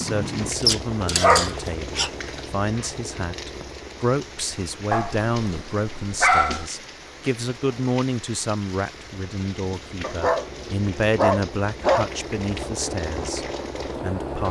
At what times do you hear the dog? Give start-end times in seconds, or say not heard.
0.6-2.1, 4.9-6.7, 10.0-12.7.